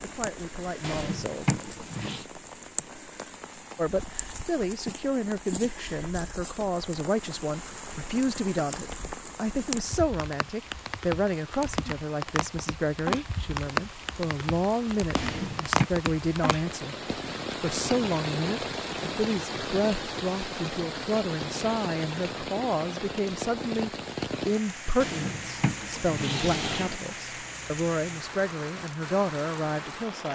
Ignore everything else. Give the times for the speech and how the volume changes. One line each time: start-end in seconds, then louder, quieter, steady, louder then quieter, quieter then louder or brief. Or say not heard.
0.0-1.6 brief
3.8-30.2 steady.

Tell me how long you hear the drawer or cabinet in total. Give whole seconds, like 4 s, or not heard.
4 s.